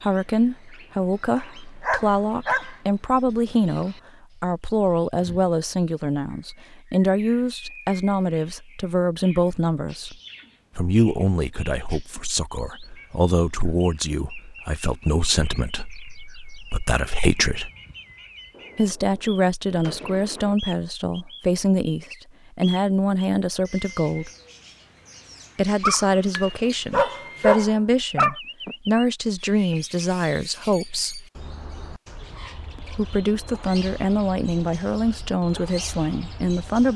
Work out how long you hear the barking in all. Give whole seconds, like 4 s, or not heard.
4 s.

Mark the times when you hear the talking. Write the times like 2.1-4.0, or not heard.
0.0-10.2, 10.8-17.7, 18.8-24.3, 25.6-31.2, 32.8-36.9.